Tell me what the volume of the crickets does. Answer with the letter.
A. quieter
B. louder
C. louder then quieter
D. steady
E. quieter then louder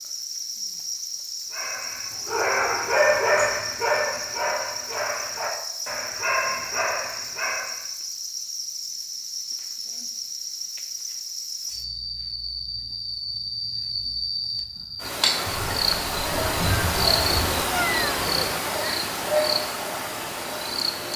B.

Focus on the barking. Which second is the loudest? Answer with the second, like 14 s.
3 s.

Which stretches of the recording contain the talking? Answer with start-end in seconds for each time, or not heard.
not heard.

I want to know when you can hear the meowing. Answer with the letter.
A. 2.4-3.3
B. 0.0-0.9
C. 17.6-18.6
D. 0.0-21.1
C.